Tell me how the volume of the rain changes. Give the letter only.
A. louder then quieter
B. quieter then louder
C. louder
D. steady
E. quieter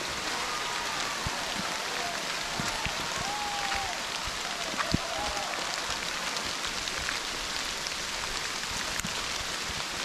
D.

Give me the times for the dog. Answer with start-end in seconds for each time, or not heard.
not heard.